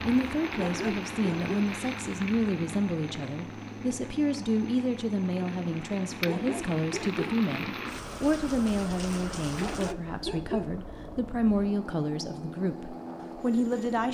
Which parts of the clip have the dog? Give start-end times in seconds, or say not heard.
0.6-1.8, 6.2-7.5, 9.6-10.8.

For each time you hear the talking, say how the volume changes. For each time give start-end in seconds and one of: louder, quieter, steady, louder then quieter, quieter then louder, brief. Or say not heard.
0.0-14.1 steady.